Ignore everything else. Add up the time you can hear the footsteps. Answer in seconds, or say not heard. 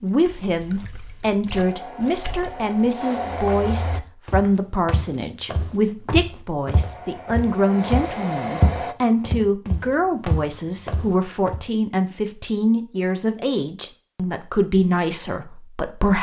8 s.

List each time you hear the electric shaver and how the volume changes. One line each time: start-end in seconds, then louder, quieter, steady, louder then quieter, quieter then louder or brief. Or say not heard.
not heard.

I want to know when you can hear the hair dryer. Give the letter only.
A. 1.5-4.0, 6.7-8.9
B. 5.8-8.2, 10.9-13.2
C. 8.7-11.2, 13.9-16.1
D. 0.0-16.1
A.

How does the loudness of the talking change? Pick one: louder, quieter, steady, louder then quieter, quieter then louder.
steady.